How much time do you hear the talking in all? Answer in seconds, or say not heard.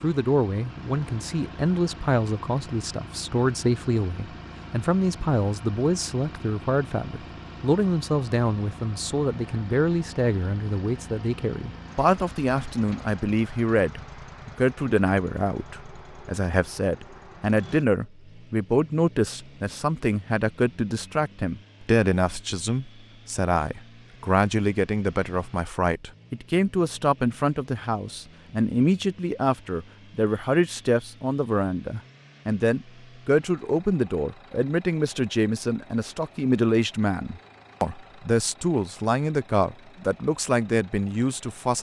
42 s.